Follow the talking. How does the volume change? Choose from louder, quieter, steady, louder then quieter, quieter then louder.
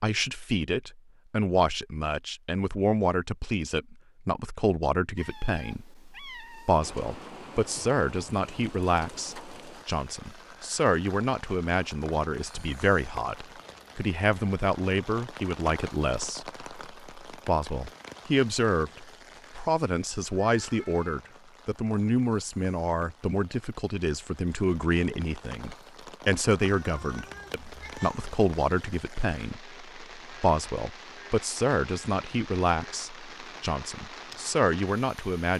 steady.